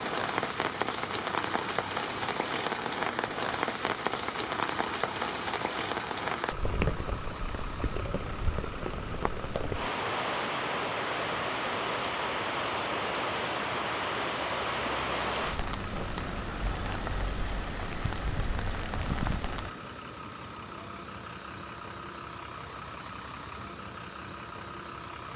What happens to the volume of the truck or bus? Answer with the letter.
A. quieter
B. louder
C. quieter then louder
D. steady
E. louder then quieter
D.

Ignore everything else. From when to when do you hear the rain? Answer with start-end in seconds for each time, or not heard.
0.0-19.7.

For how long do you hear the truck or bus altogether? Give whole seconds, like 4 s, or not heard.
25 s.